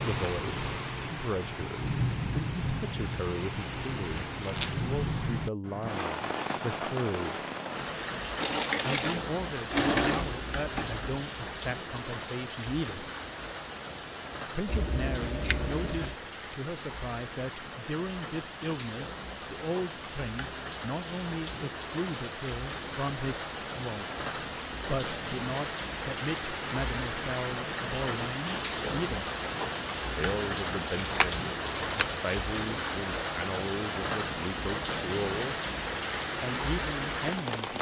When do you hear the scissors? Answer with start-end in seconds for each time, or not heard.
4.2-4.8, 14.7-16.1, 31.0-32.1.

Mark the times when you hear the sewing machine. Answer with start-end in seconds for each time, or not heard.
8.4-11.1.